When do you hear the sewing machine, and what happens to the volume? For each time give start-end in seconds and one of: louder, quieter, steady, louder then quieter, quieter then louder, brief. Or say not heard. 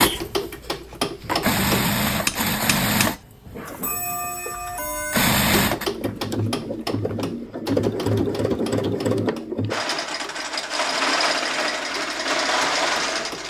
0.0-13.4 steady.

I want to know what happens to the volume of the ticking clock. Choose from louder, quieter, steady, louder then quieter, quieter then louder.
quieter.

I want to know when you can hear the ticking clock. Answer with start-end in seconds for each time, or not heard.
0.0-13.4.